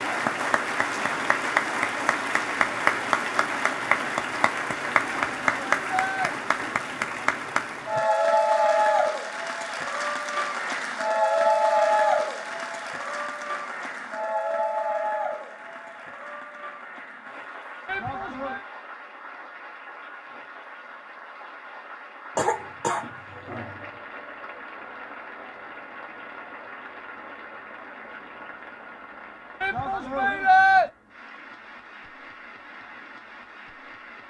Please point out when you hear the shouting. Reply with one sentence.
The shouting can be heard from 5.0 to 6.3 s, from 17.9 to 18.6 s and from 29.6 to 30.9 s.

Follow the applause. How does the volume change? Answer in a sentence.
The loudness of the applause goes down.